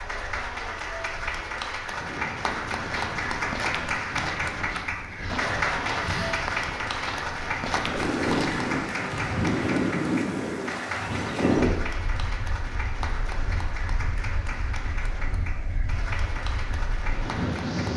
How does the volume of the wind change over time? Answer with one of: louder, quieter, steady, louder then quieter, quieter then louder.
louder then quieter.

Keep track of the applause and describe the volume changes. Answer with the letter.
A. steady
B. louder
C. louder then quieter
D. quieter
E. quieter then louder
D.